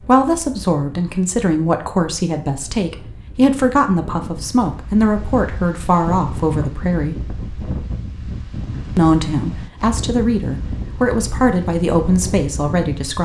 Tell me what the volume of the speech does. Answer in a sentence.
The loudness of the speech stays about the same.